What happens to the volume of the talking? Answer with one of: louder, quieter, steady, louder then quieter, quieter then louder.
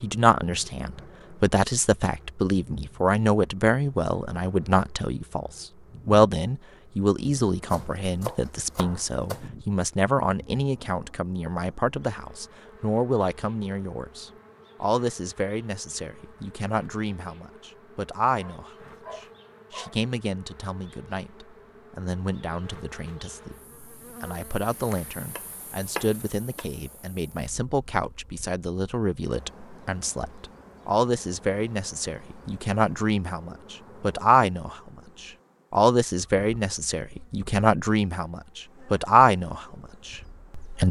quieter then louder.